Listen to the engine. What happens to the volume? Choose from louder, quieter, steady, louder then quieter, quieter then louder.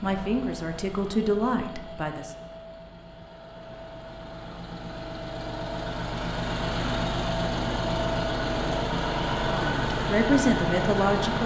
louder.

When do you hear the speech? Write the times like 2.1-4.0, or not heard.
0.0-2.3, 9.4-11.4.